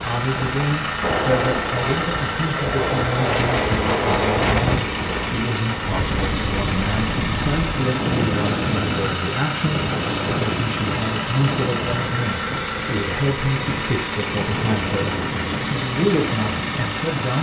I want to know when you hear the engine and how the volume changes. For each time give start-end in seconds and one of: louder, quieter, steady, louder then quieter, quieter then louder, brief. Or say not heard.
0.0-17.3 steady.